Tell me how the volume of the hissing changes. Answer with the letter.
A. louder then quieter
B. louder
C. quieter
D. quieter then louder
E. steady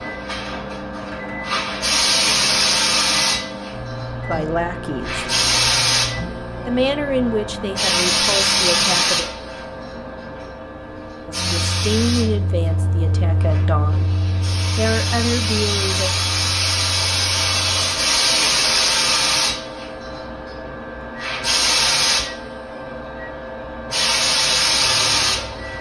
D.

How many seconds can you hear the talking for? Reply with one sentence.
The talking can be heard for 8 seconds in total.